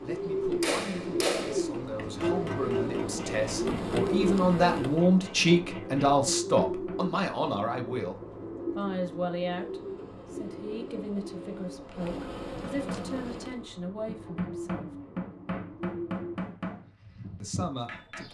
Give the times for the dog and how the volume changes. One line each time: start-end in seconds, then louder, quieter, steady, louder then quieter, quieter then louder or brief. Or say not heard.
not heard.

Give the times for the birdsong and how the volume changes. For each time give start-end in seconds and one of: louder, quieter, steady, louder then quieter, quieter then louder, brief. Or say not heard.
0.0-18.2 quieter.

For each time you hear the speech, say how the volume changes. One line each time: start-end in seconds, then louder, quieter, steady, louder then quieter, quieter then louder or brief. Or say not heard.
0.0-14.9 louder then quieter
17.4-18.2 brief.